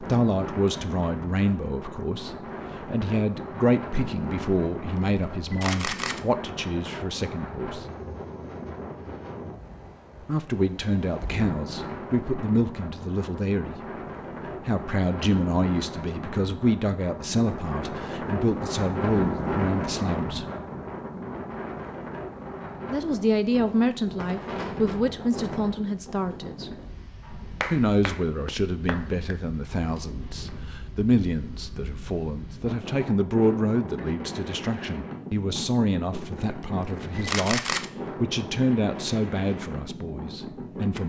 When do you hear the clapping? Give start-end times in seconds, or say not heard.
27.6-29.4.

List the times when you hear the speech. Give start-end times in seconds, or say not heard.
0.0-7.8, 10.2-13.8, 14.4-20.4, 22.9-26.7, 27.7-41.0.